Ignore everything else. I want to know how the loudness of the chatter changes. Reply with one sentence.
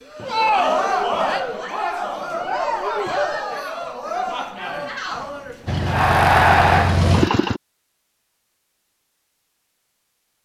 The volume of the chatter goes down, then up.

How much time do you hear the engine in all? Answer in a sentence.
You can hear the engine for 2 seconds altogether.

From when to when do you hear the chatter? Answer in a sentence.
You can hear the chatter from 0.1 to 7.0 s.